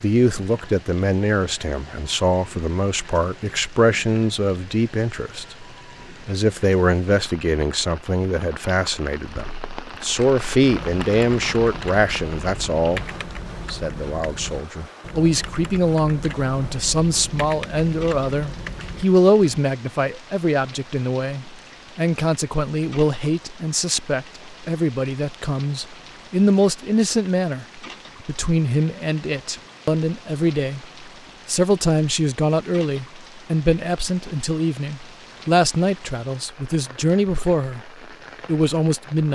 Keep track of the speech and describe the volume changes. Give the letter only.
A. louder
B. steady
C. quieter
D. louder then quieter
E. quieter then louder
B.